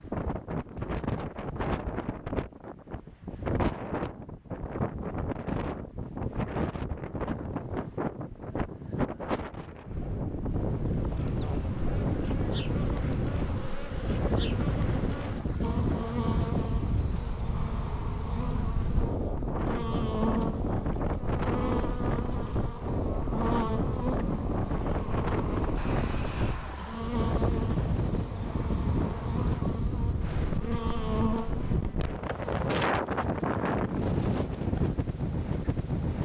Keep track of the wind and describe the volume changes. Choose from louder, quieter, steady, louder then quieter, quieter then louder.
steady.